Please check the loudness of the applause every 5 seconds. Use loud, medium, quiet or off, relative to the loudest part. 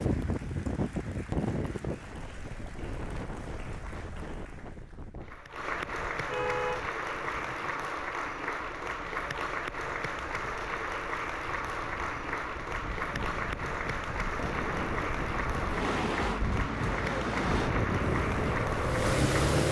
quiet, loud, loud, loud.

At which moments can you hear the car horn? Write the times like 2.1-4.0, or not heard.
6.2-7.9.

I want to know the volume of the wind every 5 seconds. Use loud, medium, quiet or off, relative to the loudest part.
loud, quiet, medium, loud.